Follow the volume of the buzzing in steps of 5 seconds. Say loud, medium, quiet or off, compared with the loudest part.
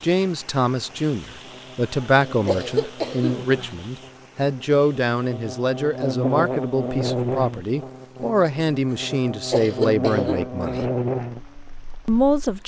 quiet, loud, loud.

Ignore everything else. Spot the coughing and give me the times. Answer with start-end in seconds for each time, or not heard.
2.5-3.7, 9.5-10.8.